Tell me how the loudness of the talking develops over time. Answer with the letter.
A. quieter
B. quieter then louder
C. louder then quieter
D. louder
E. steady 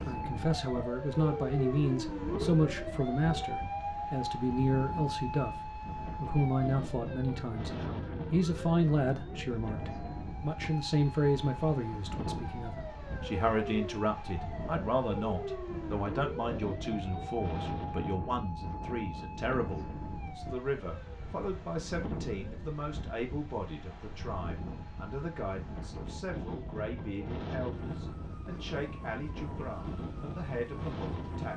A.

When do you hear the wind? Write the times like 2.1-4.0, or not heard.
0.0-31.5.